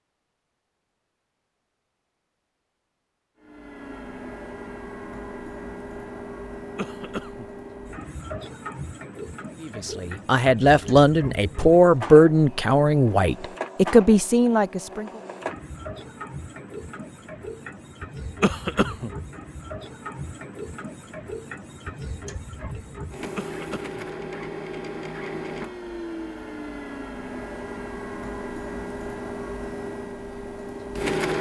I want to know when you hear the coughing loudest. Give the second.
19 s.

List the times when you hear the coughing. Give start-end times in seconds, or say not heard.
6.8-7.5, 18.4-19.1, 23.4-24.1.